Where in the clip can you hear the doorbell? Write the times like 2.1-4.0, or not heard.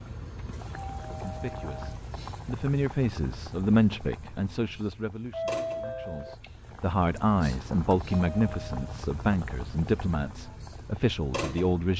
0.8-2.0, 5.3-6.3, 8.1-8.8.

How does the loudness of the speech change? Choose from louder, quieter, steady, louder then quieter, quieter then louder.
steady.